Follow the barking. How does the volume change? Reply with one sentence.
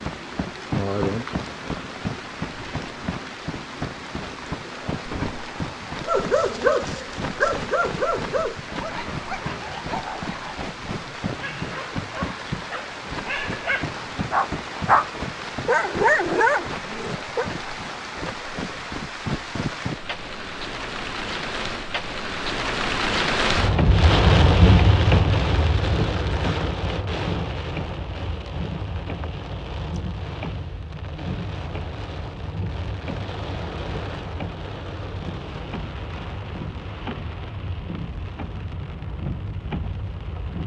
The volume of the barking goes down, then up.